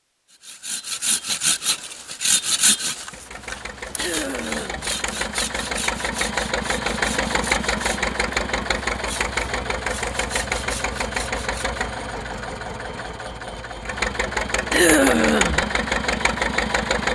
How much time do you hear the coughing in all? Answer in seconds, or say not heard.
2 s.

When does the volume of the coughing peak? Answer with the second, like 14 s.
15 s.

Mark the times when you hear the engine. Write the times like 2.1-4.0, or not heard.
3.0-17.1.